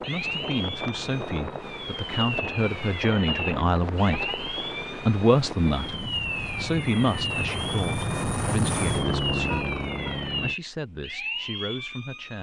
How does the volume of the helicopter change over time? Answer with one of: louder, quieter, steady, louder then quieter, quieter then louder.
louder.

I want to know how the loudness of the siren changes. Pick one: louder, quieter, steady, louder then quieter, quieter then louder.
steady.